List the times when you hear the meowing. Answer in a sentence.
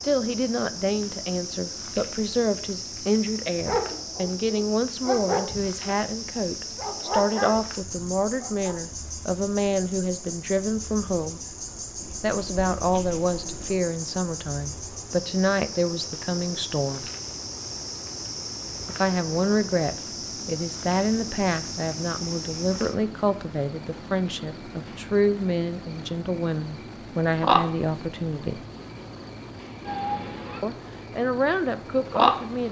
You can hear the meowing from 11.9 to 13.8 s and from 29.9 to 30.6 s.